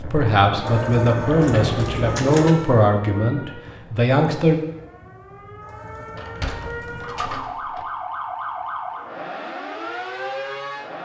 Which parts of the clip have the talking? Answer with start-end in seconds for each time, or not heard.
0.0-4.5.